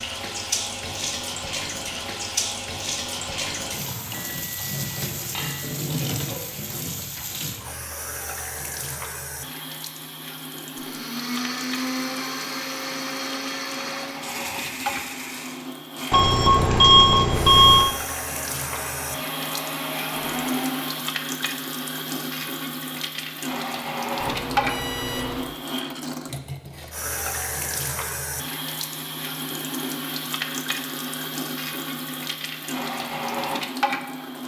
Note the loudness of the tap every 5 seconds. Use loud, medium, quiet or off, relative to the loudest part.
loud, loud, medium, medium, loud, loud, loud.